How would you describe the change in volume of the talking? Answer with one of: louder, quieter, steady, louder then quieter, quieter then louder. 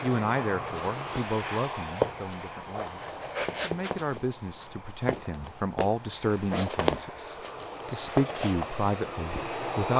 quieter then louder.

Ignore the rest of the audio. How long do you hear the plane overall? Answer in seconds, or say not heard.
10 s.